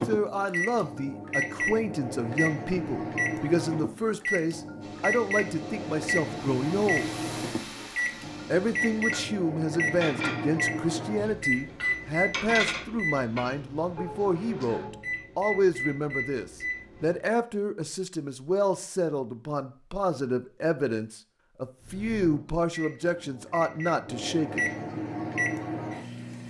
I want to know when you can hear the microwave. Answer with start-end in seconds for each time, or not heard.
0.0-17.2, 21.8-26.4.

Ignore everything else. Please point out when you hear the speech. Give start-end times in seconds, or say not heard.
0.1-7.0, 8.5-24.6.